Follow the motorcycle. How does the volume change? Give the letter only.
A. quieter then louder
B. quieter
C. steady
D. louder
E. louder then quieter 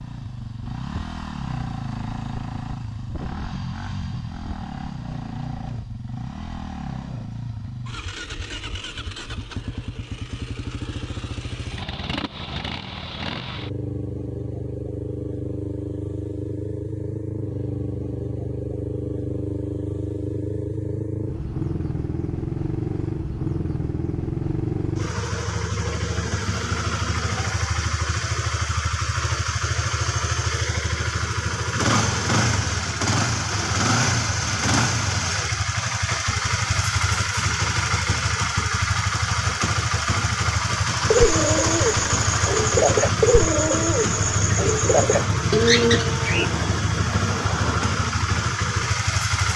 D.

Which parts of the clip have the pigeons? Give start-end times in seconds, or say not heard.
41.1-46.5.